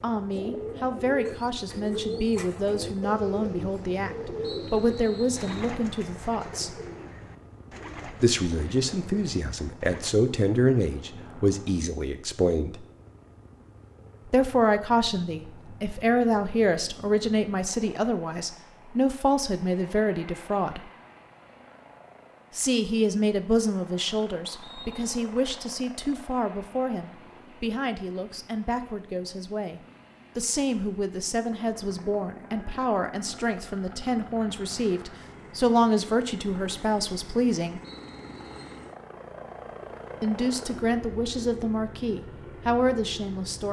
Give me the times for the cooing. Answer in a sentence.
You can hear the cooing from 0.3 to 10.1 s.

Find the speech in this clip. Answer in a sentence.
You can hear the speech from 0.0 to 6.7 s, from 8.2 to 12.8 s, from 14.2 to 20.9 s, from 22.6 to 37.8 s and from 40.2 to 43.6 s.